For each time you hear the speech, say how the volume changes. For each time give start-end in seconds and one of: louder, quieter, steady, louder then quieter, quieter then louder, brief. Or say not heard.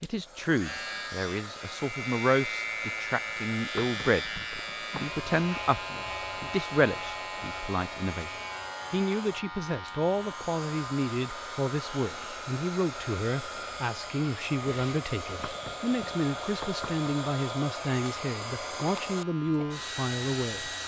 0.0-20.7 steady.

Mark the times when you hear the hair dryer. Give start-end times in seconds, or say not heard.
0.0-20.8.